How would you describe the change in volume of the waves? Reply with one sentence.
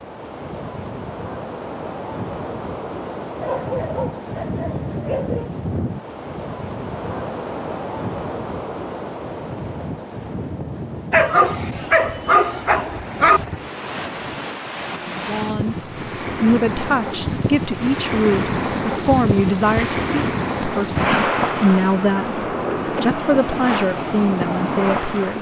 The loudness of the waves goes up.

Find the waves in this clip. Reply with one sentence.
The waves can be heard from 0.0 to 25.3 s.